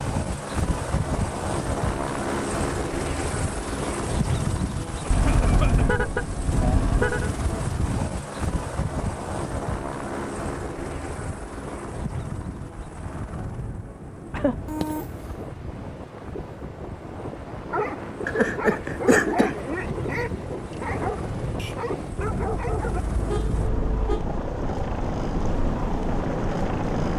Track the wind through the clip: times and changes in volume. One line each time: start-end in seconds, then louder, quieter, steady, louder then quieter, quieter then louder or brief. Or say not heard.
12.3-27.1 louder.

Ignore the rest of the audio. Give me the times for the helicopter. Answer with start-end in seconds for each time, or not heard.
0.0-27.1.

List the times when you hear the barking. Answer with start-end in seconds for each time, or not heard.
17.7-23.1.